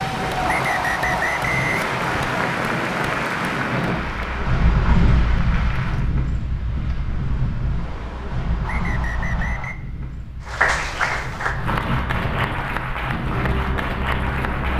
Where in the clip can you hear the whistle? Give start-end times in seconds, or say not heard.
0.5-2.4, 8.6-9.8.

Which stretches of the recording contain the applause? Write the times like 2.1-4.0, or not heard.
0.0-6.1, 10.4-14.7.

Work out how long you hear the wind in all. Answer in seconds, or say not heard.
15 s.